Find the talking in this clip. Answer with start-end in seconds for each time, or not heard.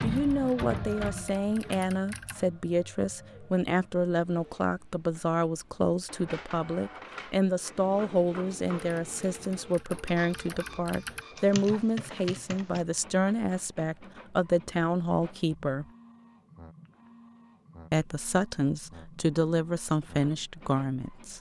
0.0-15.8, 17.9-21.3.